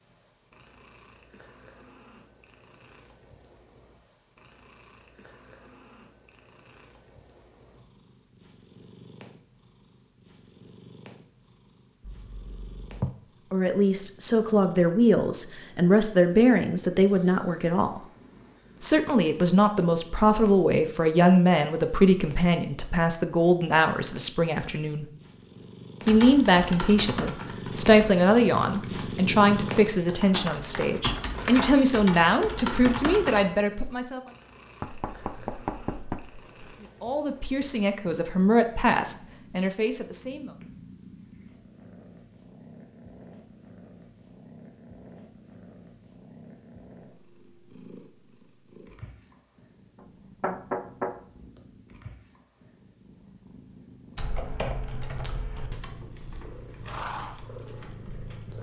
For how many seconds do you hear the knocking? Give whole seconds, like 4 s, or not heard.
4 s.